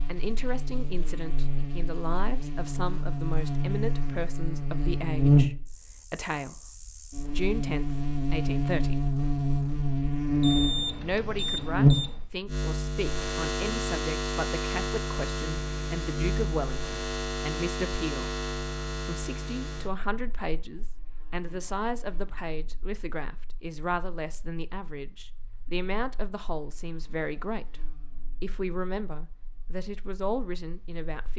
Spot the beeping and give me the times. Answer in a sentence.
The beeping can be heard from 10.4 to 12.2 s.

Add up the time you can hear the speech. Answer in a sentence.
The speech can be heard for 28 seconds in total.